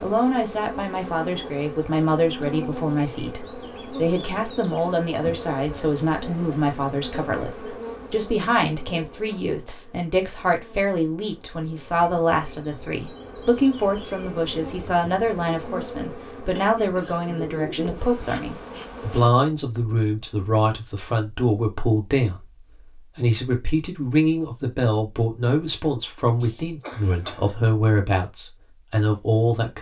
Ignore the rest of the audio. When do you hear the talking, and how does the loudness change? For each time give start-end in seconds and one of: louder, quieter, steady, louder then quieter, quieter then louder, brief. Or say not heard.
0.0-29.7 steady.